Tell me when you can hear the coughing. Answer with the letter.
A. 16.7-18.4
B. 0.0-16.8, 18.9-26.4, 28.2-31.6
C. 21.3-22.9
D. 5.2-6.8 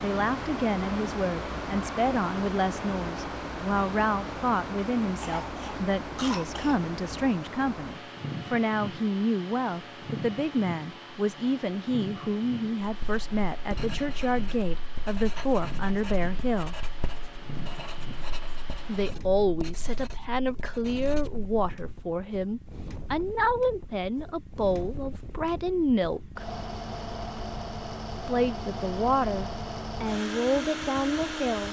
D.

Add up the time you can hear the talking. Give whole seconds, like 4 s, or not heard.
28 s.